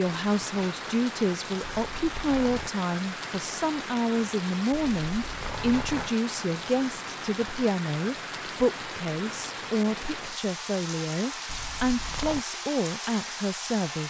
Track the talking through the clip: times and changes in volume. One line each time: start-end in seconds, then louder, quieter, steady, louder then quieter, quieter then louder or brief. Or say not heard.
0.0-14.0 steady.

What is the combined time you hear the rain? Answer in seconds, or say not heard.
14 s.